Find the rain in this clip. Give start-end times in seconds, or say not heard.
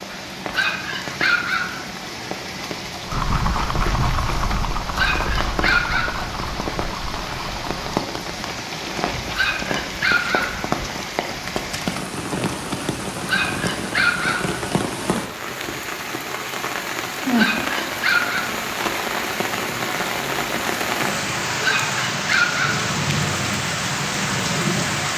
0.0-25.1.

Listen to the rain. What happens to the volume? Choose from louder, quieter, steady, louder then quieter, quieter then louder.
louder.